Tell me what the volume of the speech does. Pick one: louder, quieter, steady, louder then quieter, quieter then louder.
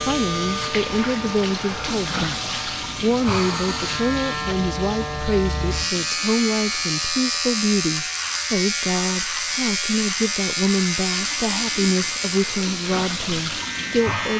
steady.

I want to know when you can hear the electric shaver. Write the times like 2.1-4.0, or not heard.
0.0-14.3.